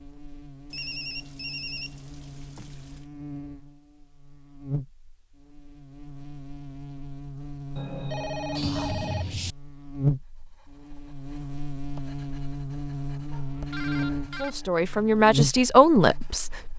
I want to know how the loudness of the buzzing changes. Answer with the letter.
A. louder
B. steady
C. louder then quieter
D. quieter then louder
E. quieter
A.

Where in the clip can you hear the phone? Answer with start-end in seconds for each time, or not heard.
0.7-3.0, 7.8-9.6, 13.3-14.5.